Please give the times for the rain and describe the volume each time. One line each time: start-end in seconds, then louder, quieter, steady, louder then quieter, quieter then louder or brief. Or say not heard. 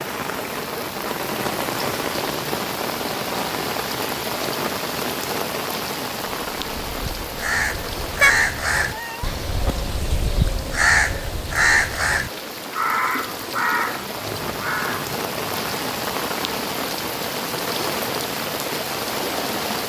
0.0-19.8 quieter then louder.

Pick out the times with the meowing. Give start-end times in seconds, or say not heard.
8.2-9.8.